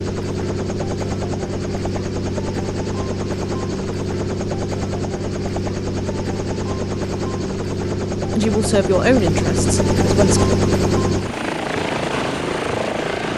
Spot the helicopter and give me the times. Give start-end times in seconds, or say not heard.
0.0-13.3.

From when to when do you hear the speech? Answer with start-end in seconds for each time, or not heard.
8.3-10.4.